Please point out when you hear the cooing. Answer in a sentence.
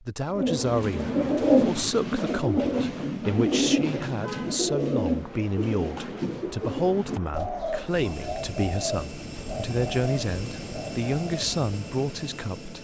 The cooing can be heard from 0.3 to 11.4 s.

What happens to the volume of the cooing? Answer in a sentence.
The loudness of the cooing goes down.